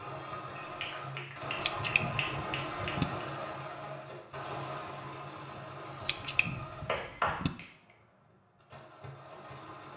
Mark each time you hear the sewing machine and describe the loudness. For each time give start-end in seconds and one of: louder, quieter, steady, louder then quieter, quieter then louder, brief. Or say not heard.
0.0-9.9 quieter.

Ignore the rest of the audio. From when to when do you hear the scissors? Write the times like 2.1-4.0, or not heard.
1.6-3.0, 6.0-7.5.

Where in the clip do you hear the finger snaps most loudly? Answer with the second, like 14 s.
7 s.